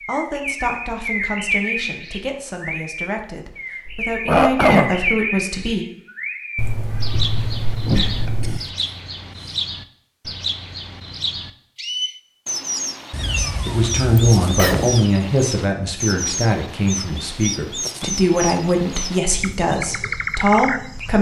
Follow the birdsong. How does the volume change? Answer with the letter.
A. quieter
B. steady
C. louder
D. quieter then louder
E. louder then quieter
B.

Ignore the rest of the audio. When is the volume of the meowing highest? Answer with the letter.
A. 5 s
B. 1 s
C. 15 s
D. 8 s
D.